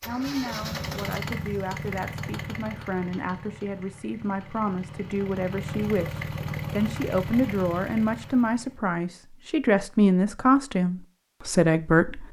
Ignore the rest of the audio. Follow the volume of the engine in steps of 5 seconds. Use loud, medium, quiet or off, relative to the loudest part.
loud, loud, off.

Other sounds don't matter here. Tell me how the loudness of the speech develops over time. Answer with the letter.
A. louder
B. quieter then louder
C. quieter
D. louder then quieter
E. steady
A.